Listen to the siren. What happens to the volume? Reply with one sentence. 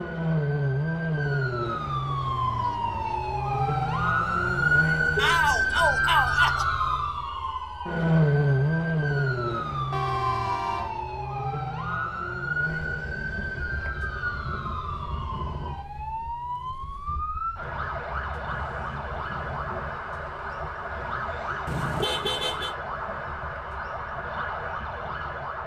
The loudness of the siren goes down.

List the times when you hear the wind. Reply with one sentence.
You can hear the wind from 12.6 to 25.6 s.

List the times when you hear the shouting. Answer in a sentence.
The shouting can be heard from 5.2 to 6.7 s.